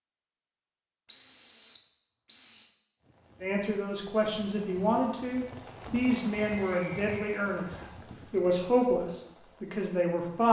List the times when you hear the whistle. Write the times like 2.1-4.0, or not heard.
1.1-2.7, 6.6-7.9.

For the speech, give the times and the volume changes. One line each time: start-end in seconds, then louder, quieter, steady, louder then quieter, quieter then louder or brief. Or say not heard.
3.4-10.4 steady.